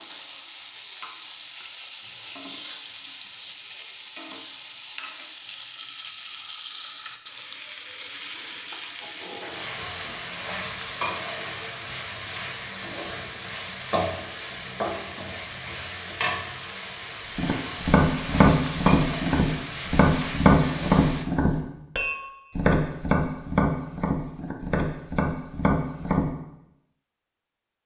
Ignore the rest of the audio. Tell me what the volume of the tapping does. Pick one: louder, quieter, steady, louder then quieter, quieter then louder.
quieter.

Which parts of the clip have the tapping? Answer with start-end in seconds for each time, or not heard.
17.4-26.2.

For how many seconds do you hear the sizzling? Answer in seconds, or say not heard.
21 s.